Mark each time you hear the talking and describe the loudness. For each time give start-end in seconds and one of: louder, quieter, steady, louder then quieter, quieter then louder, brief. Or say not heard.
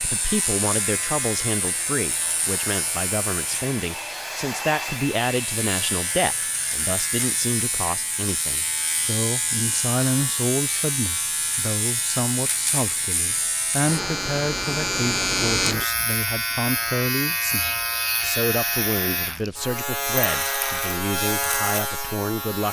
0.0-22.6 steady.